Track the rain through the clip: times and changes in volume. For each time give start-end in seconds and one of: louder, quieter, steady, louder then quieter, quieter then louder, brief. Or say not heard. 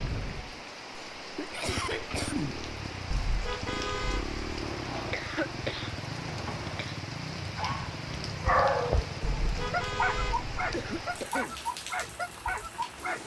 0.0-13.2 steady.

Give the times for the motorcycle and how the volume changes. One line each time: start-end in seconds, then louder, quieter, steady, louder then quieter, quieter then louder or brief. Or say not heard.
0.0-11.1 steady.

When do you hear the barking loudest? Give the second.
9 s.